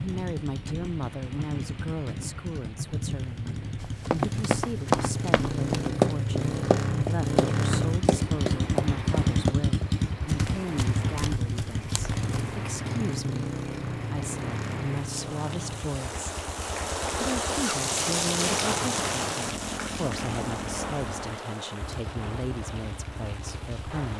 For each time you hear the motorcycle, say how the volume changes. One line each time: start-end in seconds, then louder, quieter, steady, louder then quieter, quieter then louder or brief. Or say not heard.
0.0-24.1 louder then quieter.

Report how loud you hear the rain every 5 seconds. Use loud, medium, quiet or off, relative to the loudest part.
medium, medium, medium, loud, medium.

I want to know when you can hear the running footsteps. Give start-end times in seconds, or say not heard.
3.8-12.6.